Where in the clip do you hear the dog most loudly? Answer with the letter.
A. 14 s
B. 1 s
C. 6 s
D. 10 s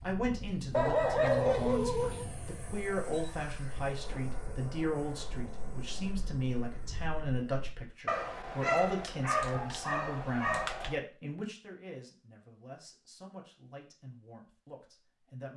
B.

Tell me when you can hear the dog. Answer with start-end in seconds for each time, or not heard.
0.7-2.2, 8.1-10.9.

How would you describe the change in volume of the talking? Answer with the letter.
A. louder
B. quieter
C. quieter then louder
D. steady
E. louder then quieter
B.